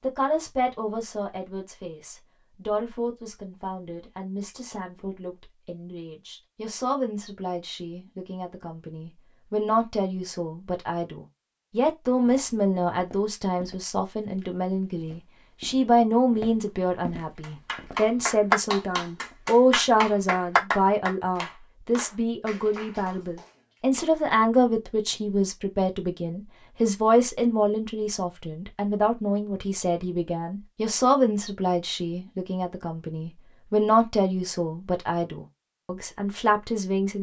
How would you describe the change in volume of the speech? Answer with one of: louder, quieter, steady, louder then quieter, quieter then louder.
louder.